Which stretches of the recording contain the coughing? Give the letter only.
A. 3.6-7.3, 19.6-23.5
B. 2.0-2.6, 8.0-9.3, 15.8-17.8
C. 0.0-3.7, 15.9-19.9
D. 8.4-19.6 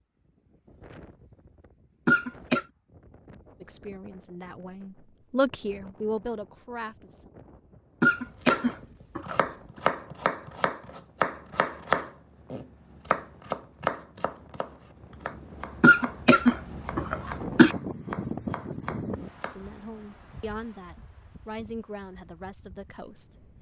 B.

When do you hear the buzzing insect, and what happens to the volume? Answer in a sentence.
You can't hear the buzzing insect here.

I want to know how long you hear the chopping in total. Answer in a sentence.
The chopping can be heard for 11 seconds in total.